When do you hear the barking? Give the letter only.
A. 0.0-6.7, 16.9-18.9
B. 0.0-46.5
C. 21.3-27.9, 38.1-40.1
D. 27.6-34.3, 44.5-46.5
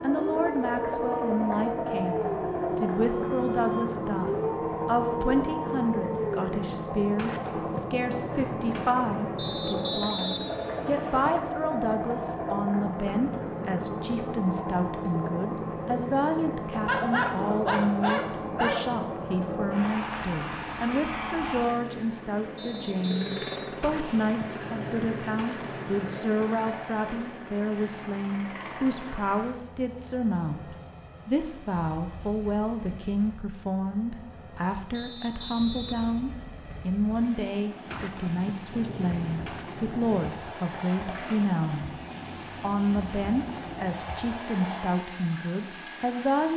A.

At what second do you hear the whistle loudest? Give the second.
10 s.